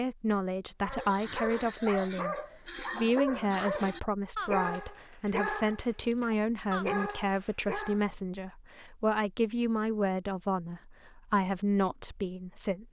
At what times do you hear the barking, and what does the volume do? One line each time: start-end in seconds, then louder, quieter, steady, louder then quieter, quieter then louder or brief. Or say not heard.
0.8-8.1 steady.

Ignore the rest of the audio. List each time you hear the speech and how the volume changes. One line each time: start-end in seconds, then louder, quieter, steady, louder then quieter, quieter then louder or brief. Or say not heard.
0.0-12.8 steady.